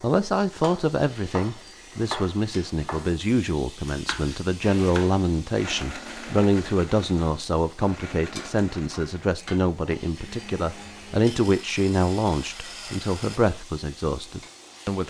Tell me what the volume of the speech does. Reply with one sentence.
The loudness of the speech stays about the same.